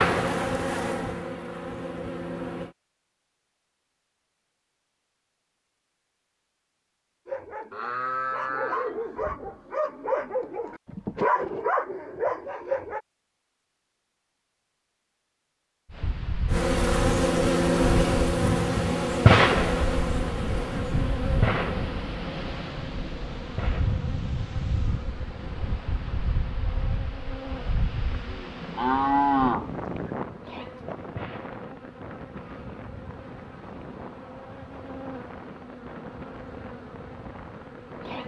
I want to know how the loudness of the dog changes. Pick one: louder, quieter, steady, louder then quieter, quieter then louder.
louder.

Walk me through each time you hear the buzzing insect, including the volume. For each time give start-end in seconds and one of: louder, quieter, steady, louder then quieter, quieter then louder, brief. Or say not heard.
0.0-2.8 brief
16.5-38.2 quieter.